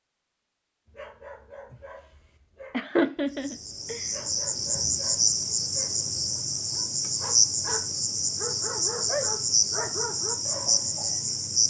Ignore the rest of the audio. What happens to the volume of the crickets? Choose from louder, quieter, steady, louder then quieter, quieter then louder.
steady.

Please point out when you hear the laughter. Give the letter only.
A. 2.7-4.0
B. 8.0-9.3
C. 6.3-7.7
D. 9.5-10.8
A.